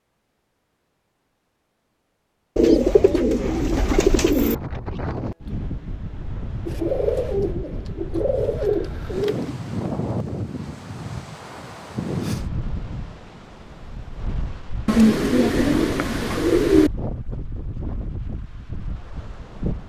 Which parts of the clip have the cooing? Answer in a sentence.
The cooing can be heard from 2.5 to 4.5 s, from 6.7 to 9.6 s and from 14.8 to 16.9 s.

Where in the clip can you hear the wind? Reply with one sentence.
You can hear the wind from 3.4 to 19.8 s.